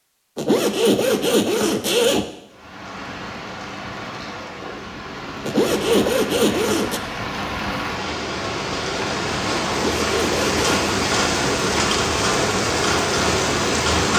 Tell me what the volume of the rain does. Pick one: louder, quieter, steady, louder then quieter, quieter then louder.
louder.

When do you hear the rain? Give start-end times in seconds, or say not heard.
2.5-14.1.